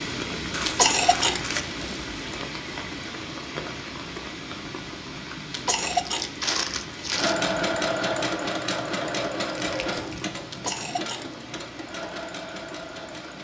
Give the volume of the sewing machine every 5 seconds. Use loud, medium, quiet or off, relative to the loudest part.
off, loud, medium.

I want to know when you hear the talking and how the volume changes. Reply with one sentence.
The talking can't be heard in this clip.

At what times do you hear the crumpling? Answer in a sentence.
You can hear the crumpling from 0.5 to 1.6 s, from 5.8 to 7.3 s and from 9.6 to 10.2 s.